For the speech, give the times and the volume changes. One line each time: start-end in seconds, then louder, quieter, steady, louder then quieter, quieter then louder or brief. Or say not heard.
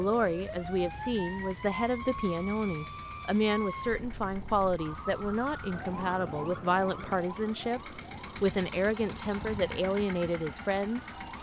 0.0-11.1 steady.